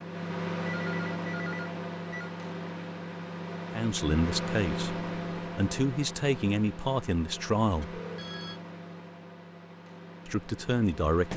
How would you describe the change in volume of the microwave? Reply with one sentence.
The loudness of the microwave goes down.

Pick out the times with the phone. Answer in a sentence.
The phone can be heard from 0.8 to 2.4 s and from 7.9 to 8.6 s.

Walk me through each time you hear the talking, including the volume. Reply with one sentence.
The talking can be heard from 3.8 to 8.0 s, getting quieter then louder; and briefly from 10.2 to 11.3 s.